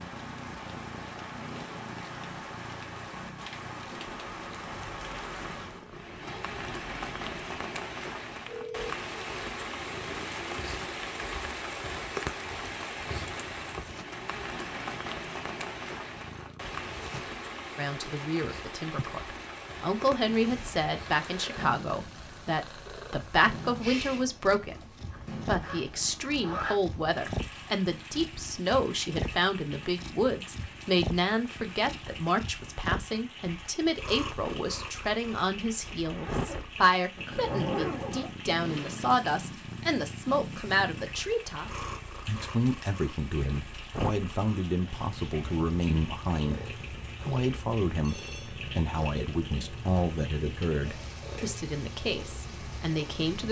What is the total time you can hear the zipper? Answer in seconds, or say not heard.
6 s.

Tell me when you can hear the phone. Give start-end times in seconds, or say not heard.
8.4-8.9, 48.0-48.6.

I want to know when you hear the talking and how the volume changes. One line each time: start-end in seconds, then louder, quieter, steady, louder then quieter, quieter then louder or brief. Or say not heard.
17.8-53.4 steady.